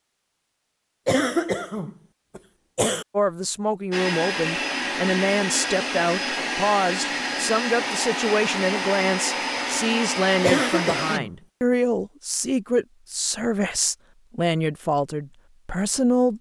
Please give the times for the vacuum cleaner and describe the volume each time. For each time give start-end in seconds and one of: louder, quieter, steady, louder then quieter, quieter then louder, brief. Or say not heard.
3.9-11.2 steady.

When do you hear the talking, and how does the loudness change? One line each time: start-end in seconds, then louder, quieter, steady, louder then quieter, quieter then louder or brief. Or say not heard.
3.1-16.3 steady.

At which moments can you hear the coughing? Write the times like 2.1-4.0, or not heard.
1.1-3.0, 10.4-11.8.